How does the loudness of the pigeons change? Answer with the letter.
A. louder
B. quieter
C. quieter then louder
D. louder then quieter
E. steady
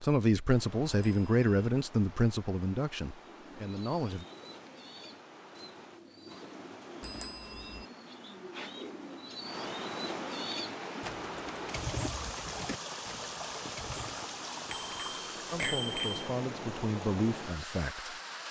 A.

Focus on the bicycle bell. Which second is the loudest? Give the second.
16 s.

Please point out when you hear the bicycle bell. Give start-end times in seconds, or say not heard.
0.8-1.7, 7.0-7.8, 14.7-16.4.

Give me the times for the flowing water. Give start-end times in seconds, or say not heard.
0.2-18.4.